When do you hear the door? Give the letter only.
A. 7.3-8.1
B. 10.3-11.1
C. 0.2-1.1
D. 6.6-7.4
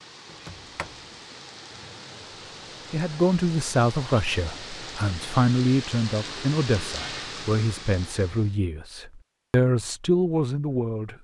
C.